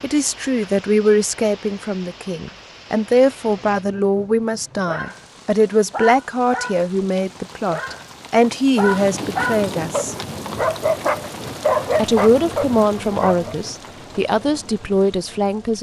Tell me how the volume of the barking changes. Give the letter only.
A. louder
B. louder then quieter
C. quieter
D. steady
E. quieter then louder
A.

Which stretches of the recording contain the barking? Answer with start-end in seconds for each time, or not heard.
3.5-13.6.